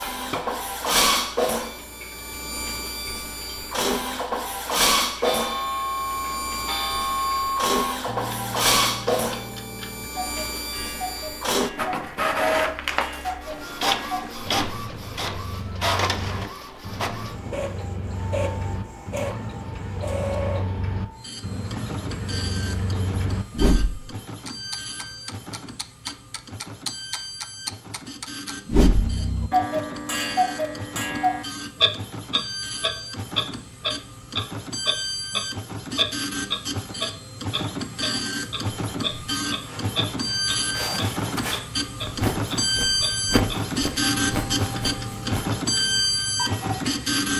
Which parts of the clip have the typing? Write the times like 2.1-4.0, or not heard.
not heard.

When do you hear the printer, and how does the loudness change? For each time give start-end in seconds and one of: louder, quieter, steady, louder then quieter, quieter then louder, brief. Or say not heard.
0.0-47.3 quieter then louder.